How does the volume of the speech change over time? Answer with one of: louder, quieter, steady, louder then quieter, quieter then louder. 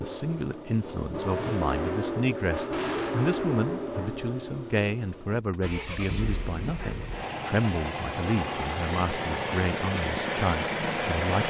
steady.